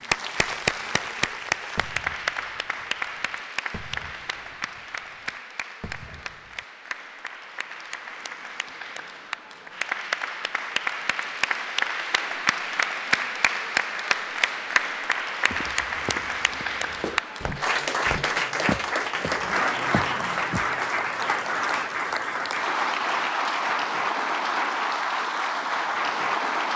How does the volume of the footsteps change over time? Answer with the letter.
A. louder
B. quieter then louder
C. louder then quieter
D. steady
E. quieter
C.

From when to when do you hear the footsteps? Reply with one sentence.
You can hear the footsteps from 15.5 to 20.7 s.